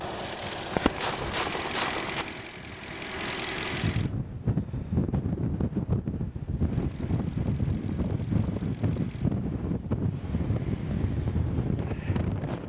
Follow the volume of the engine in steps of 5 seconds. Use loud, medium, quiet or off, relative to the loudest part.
loud, quiet, quiet.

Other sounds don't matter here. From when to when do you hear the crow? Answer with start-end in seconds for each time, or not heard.
not heard.